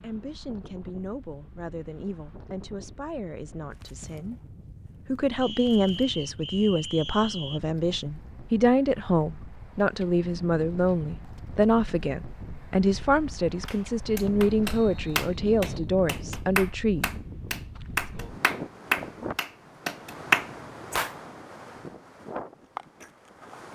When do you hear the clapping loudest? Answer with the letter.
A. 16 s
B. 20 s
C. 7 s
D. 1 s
B.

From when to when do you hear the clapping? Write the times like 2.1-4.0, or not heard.
13.7-21.1.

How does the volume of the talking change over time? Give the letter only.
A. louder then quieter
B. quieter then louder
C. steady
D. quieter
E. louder
E.